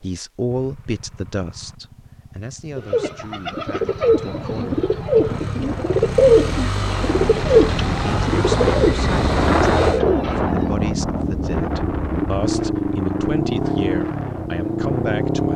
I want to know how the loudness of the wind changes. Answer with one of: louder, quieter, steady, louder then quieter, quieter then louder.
louder then quieter.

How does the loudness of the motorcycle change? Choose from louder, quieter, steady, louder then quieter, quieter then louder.
louder.